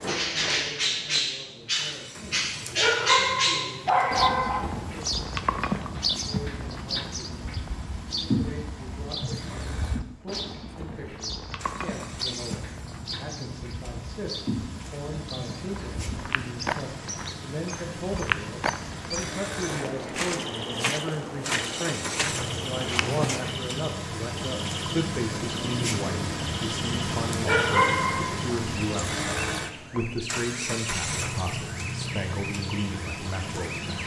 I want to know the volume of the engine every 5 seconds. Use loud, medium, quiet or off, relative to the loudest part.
quiet, quiet, quiet, medium, loud, loud, loud.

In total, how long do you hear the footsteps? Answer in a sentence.
You can hear the footsteps for 8 seconds altogether.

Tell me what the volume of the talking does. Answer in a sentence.
The volume of the talking goes up.